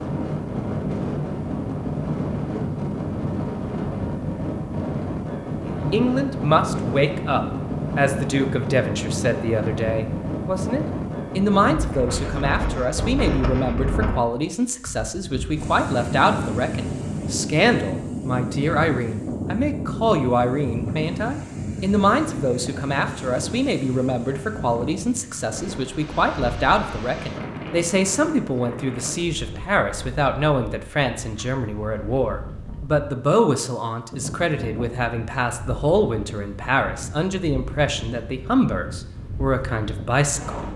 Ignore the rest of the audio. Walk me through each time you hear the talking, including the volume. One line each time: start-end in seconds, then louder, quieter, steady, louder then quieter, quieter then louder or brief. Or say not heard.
5.7-40.7 steady.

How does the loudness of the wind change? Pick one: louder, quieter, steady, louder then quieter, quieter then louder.
quieter.